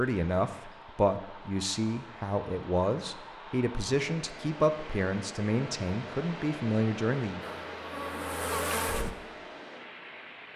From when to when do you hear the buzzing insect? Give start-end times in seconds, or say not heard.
7.4-9.1.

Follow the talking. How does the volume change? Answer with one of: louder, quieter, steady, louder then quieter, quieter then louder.
steady.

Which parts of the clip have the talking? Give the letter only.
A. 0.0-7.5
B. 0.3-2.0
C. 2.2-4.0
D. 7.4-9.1
A.